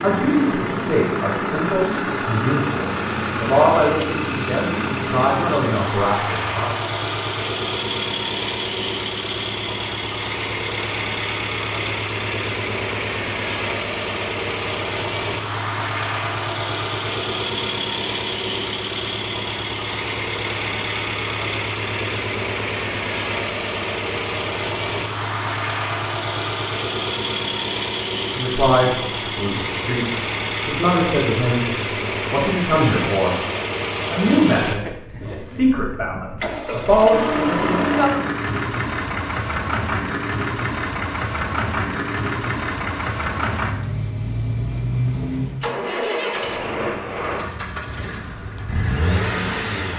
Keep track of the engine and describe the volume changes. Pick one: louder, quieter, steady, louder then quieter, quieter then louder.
steady.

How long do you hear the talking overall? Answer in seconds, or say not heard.
15 s.